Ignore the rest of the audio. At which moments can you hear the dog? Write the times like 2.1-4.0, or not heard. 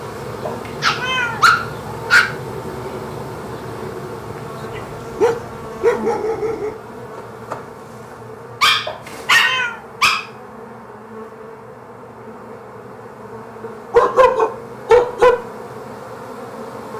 0.8-2.3, 4.8-6.8, 8.6-10.2, 13.9-15.4.